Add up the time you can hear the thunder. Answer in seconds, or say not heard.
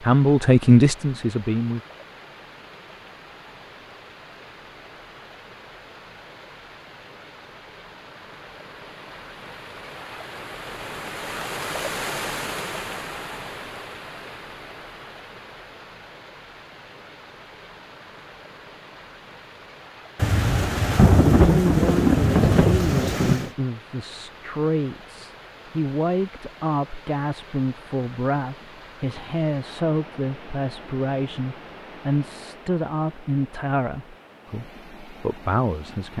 3 s.